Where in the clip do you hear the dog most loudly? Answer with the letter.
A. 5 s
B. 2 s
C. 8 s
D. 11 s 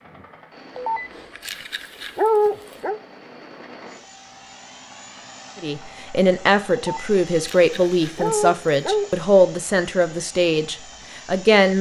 B.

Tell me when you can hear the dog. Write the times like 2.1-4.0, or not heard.
0.8-3.0, 6.8-9.1.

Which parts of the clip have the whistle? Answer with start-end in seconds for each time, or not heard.
not heard.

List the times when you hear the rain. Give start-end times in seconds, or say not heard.
not heard.